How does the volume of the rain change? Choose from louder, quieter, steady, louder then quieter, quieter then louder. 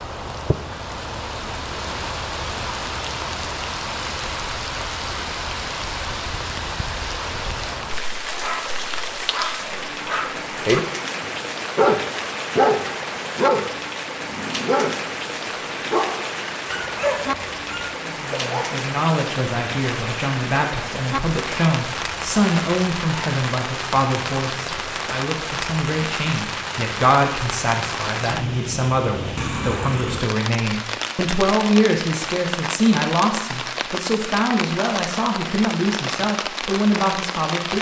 steady.